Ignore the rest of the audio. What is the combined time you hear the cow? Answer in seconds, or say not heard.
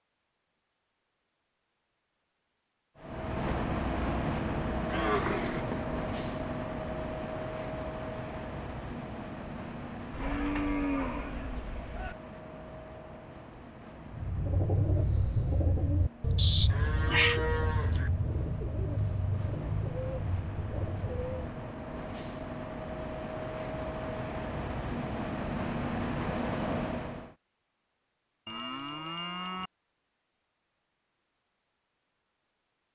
6 s.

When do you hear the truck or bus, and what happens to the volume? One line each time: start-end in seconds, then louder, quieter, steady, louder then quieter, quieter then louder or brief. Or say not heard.
3.0-27.4 quieter then louder.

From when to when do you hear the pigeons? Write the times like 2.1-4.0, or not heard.
14.1-21.6.